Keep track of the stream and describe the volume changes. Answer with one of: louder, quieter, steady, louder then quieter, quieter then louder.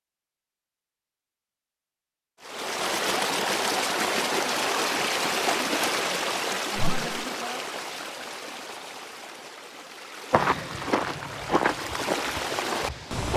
quieter then louder.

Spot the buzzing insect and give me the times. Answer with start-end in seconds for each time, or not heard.
not heard.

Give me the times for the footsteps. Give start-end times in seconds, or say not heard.
10.3-13.3.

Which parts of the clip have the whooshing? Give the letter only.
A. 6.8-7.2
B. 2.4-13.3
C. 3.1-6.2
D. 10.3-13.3
A.